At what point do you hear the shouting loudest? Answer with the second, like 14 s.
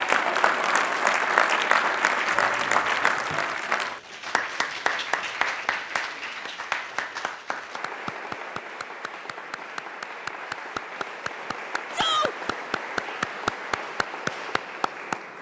12 s.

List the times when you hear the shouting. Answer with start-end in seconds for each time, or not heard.
2.3-3.7, 11.9-12.3.